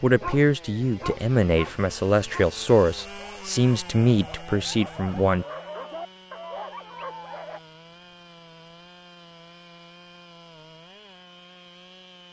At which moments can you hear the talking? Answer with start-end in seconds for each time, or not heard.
0.0-5.5.